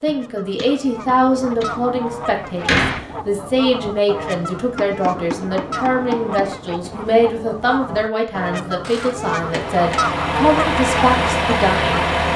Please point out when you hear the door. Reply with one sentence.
The door can be heard from 2.1 to 3.0 s.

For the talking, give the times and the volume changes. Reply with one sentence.
The talking can be heard from 0.0 to 12.1 s, at a steady volume.